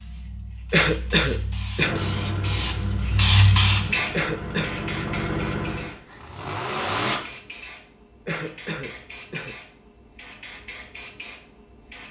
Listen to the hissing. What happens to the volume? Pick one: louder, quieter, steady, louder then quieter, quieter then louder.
louder then quieter.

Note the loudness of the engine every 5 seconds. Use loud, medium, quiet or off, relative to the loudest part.
medium, loud, off.